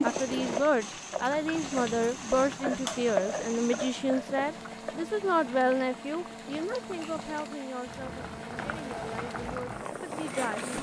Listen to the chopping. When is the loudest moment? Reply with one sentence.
The loudest moment of the chopping is at 3 seconds.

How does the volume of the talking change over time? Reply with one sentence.
The volume of the talking goes down.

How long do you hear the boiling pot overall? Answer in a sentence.
You can hear the boiling pot for 11 seconds altogether.